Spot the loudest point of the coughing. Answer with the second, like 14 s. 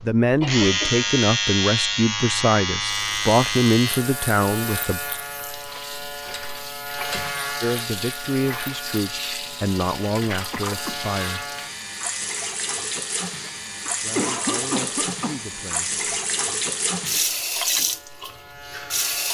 14 s.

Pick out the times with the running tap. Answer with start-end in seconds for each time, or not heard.
2.9-19.2.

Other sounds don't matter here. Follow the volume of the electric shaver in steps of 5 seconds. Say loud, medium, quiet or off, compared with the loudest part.
loud, medium, medium, quiet.